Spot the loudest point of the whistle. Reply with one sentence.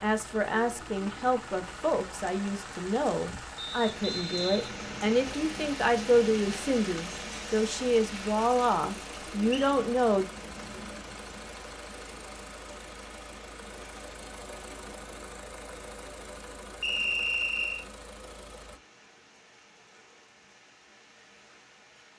The volume of the whistle peaks at 17 seconds.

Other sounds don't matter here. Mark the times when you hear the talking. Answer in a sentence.
The talking can be heard from 0.0 to 10.2 s.